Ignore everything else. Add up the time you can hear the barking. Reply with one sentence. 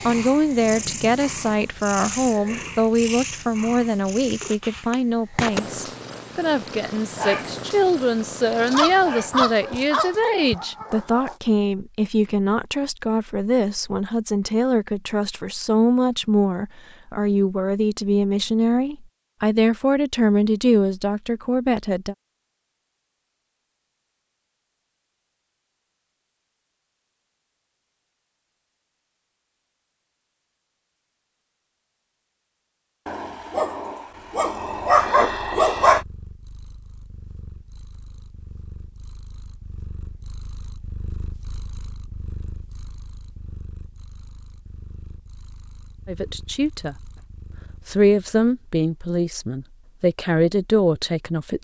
The barking can be heard for 6 seconds in total.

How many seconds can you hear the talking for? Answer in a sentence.
The talking can be heard for 27 seconds in total.